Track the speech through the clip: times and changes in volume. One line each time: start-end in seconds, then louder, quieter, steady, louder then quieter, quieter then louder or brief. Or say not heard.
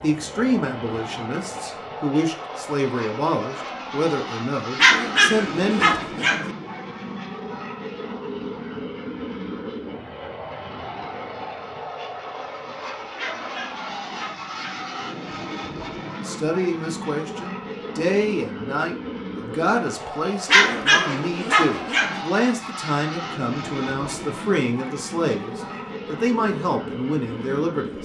0.0-6.0 steady
16.1-27.9 steady.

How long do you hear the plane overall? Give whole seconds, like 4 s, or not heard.
28 s.